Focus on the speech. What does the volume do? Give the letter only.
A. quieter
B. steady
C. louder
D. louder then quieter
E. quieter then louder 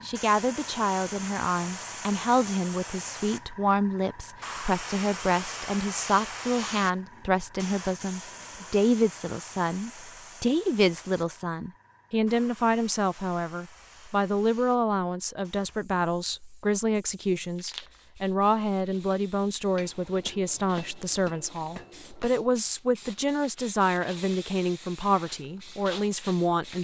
B.